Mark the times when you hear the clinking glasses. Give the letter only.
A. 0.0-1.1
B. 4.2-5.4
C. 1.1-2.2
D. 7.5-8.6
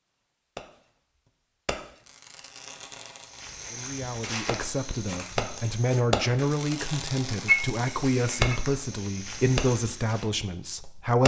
D.